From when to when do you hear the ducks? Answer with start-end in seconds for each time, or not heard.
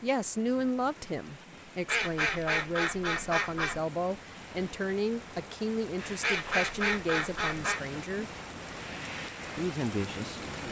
1.9-3.8, 6.2-7.8.